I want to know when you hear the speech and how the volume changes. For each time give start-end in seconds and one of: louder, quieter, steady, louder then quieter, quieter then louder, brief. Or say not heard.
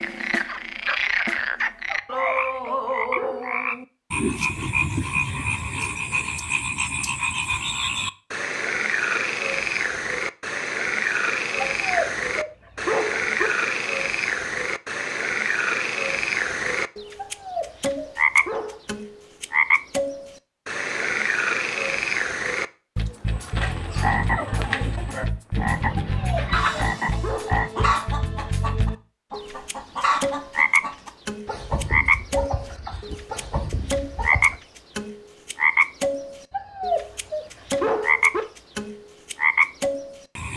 not heard.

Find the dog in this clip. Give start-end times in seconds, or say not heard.
1.9-3.5, 11.8-13.5, 17.1-18.8, 25.9-27.6, 36.5-38.5.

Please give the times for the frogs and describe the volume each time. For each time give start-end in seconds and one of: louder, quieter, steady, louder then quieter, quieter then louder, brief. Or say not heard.
0.0-40.5 steady.